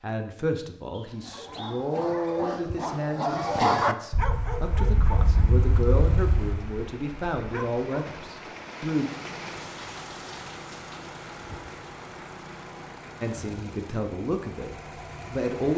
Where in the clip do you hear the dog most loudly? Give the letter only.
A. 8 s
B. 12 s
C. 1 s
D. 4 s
D.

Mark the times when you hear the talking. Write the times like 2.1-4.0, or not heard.
0.0-9.1, 13.2-15.7.